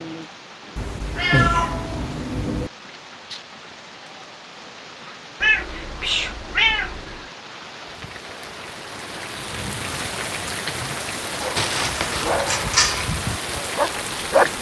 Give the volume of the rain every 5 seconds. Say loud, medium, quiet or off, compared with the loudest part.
medium, medium, loud.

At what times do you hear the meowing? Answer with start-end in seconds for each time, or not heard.
0.8-2.7, 5.4-7.2, 11.6-12.2.